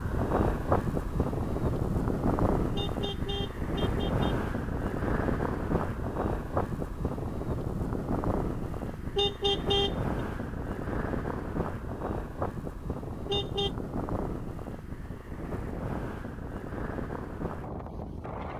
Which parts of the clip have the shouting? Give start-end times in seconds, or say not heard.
not heard.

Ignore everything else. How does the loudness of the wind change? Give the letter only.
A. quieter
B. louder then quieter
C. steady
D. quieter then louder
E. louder
A.